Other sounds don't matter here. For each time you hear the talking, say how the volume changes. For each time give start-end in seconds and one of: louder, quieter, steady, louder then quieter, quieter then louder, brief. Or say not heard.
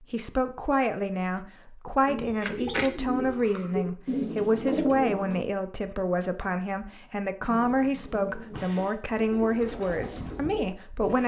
0.0-11.2 steady.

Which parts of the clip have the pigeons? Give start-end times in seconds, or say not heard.
2.0-5.5, 7.5-11.2.